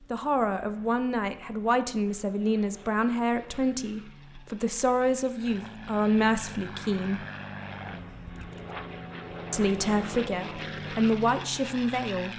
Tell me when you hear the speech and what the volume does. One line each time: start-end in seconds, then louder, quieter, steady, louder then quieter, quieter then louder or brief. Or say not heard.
0.1-7.2 steady
9.5-12.3 brief.